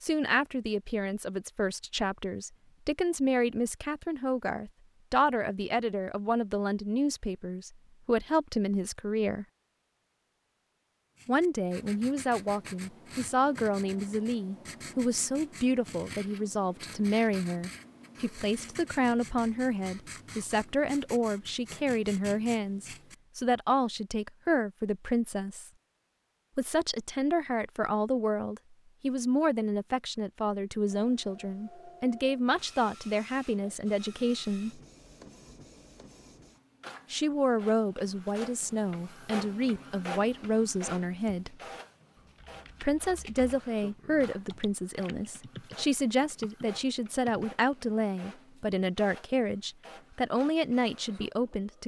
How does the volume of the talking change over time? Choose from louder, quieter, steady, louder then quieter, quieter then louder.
steady.